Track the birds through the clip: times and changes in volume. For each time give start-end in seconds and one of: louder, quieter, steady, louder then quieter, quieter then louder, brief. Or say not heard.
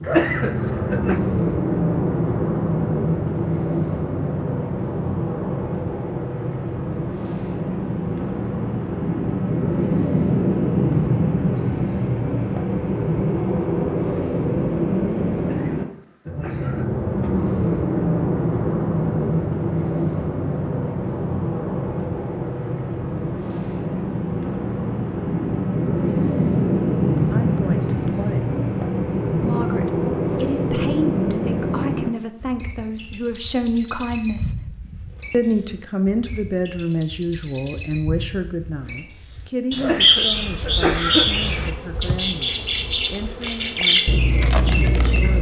0.0-45.3 steady.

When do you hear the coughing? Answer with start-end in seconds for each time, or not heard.
0.1-1.2, 15.4-17.4, 39.8-41.3.